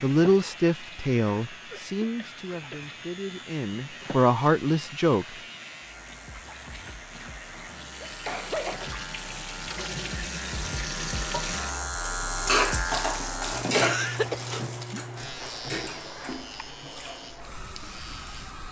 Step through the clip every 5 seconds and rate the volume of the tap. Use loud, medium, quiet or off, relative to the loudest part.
quiet, medium, loud, medium.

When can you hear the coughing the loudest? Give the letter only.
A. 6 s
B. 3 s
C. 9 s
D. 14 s
D.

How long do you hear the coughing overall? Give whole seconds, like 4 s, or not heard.
3 s.